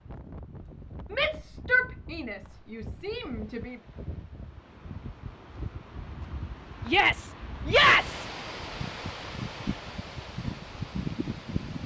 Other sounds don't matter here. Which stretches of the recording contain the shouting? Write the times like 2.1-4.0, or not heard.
1.1-3.8, 6.8-8.2.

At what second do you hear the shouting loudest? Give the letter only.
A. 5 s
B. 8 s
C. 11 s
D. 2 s
B.